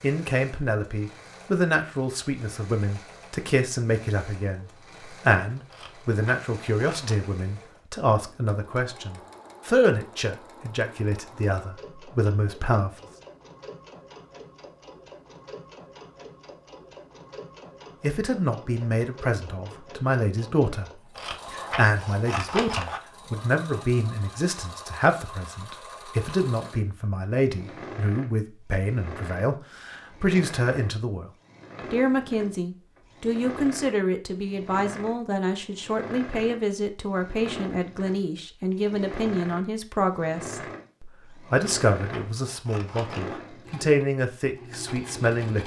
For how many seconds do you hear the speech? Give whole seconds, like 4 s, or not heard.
40 s.